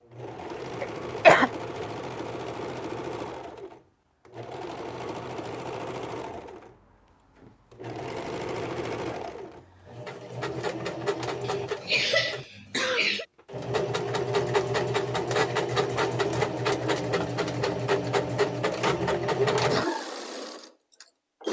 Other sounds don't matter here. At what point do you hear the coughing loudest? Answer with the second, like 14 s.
1 s.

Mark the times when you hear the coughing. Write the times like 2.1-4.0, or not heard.
0.8-1.5, 11.4-13.2.